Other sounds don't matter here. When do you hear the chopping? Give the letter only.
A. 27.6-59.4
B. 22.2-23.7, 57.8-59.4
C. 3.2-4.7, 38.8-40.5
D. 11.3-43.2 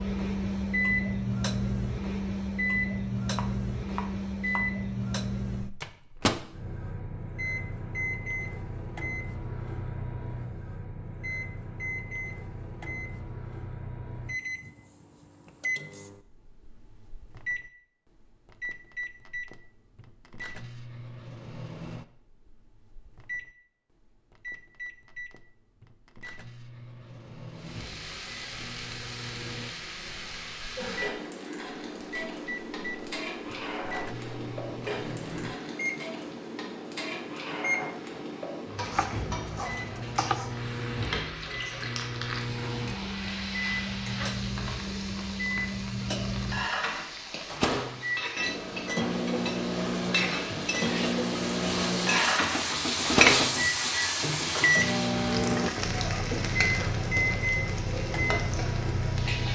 C.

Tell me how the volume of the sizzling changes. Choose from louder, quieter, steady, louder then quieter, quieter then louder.
louder.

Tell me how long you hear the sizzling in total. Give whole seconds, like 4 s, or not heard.
32 s.